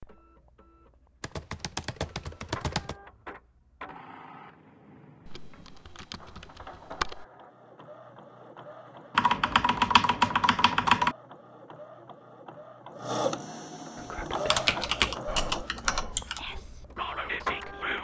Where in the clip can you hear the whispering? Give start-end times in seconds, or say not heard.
13.9-17.9.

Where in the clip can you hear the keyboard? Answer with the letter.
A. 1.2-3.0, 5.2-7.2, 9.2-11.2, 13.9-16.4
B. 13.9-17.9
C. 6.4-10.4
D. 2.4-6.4
A.